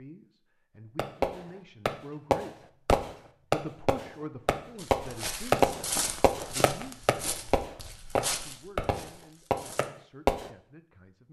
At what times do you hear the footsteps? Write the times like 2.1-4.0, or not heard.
4.8-9.9.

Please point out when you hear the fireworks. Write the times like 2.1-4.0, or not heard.
0.9-10.5.